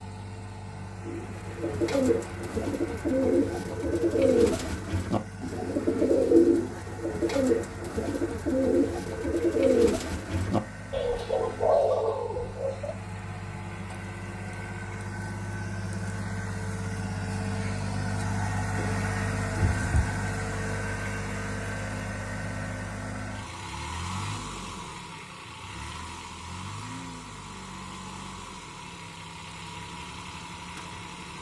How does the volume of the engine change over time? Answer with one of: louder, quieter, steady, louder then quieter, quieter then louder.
louder then quieter.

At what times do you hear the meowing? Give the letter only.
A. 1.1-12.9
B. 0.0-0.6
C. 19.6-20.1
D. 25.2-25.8
C.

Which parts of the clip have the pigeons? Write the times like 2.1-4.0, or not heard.
1.1-12.9.